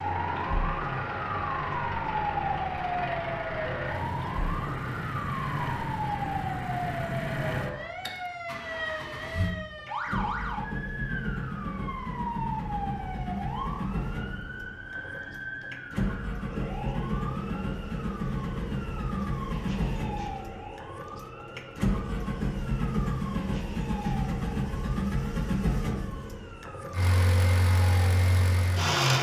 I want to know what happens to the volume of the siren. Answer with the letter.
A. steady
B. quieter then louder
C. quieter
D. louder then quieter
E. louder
C.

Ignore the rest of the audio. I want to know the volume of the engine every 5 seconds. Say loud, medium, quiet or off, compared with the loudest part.
medium, medium, medium, loud, loud, loud.